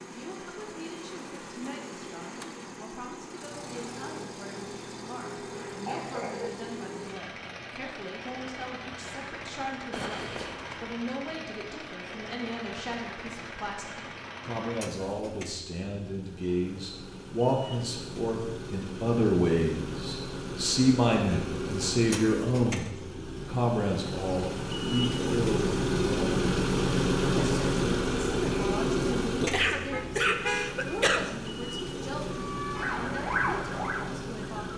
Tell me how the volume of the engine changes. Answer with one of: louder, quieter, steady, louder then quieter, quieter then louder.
louder.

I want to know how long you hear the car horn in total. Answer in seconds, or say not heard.
2 s.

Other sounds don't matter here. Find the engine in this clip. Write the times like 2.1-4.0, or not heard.
0.0-34.7.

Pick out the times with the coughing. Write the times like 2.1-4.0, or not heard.
5.4-6.5, 29.5-31.2.